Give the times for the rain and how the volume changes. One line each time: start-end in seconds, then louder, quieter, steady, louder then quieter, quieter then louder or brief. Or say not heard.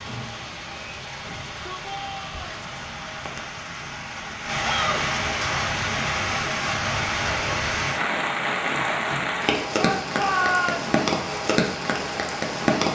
0.0-12.9 louder.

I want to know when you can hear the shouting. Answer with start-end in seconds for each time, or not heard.
1.2-2.4, 4.6-5.0, 9.8-10.9.